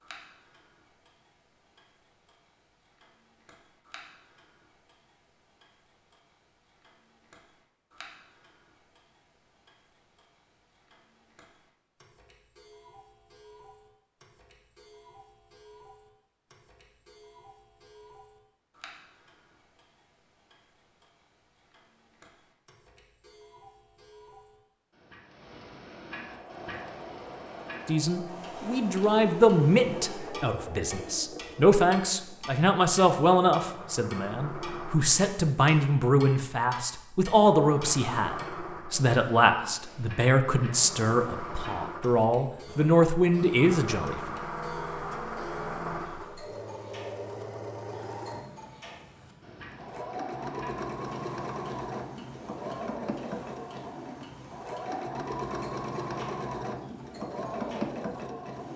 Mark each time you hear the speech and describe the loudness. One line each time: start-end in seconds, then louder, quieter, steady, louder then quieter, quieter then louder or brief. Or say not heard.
27.9-44.4 steady.